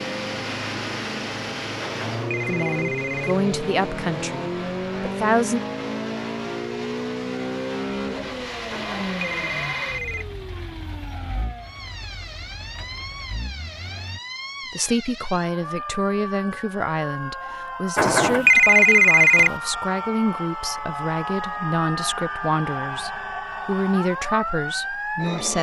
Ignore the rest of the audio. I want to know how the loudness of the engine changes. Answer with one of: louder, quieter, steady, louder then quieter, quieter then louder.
quieter.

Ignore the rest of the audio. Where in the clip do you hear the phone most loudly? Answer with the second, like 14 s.
19 s.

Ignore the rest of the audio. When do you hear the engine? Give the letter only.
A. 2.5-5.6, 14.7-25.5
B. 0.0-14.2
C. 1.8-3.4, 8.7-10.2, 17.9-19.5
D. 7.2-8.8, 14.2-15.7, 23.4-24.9
B.